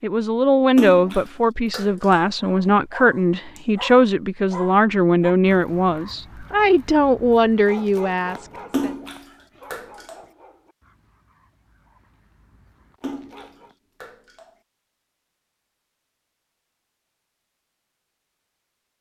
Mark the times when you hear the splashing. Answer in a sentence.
The splashing can be heard from 0.8 to 2.2 s, from 8.7 to 10.2 s and from 13.0 to 14.5 s.